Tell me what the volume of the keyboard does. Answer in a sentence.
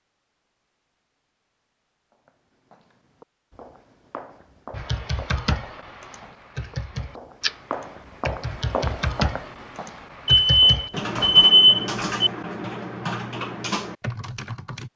The volume of the keyboard stays about the same.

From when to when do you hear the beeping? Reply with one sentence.
The beeping can be heard from 10.2 to 12.3 s.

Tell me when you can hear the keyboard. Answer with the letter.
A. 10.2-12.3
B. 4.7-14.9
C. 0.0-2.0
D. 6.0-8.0
B.